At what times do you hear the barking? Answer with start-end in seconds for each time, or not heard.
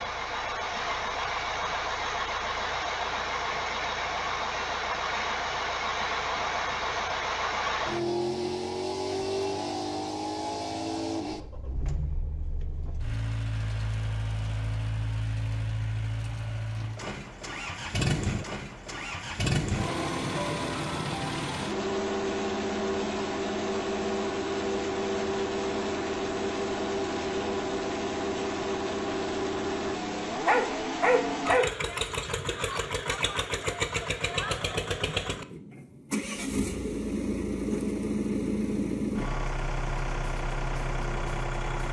30.4-31.6.